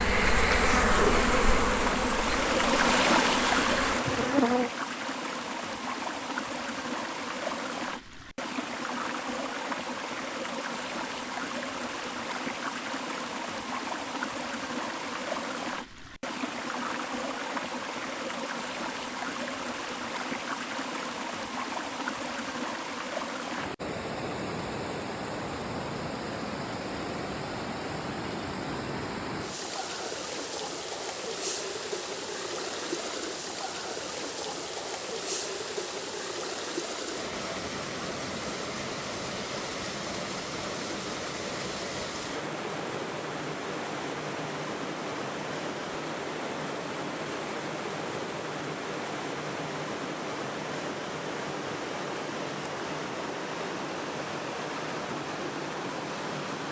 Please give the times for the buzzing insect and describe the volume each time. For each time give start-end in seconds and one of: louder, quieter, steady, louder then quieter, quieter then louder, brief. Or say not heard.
0.0-4.7 quieter.